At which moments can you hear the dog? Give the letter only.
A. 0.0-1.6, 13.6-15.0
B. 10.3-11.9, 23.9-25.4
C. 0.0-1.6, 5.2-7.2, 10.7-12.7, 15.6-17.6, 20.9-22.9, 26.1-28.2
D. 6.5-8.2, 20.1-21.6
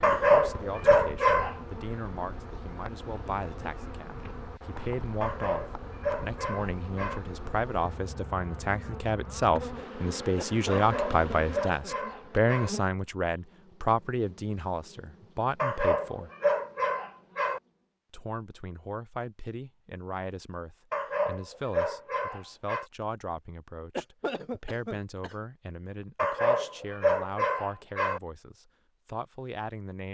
C.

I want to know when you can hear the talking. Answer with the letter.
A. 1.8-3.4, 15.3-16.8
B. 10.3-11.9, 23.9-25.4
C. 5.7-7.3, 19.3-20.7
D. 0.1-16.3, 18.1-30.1
D.